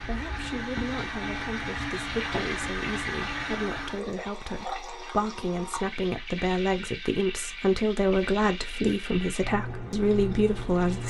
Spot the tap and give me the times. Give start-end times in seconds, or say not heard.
0.0-11.0.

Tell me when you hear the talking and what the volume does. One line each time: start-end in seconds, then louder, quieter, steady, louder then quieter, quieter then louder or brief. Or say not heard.
0.0-11.0 louder.